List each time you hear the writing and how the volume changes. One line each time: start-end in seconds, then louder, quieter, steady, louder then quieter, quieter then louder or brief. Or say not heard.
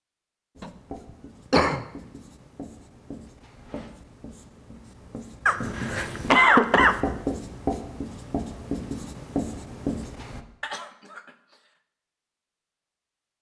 0.6-10.4 louder.